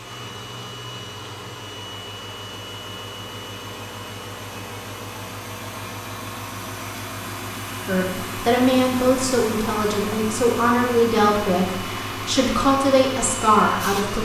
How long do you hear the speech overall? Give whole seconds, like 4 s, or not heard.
6 s.